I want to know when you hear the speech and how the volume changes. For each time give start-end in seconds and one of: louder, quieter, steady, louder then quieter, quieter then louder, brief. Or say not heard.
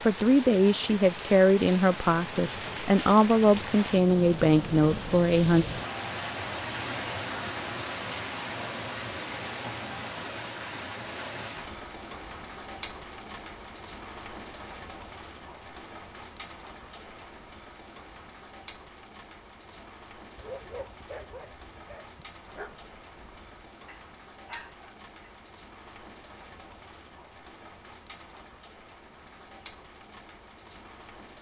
0.0-5.7 steady.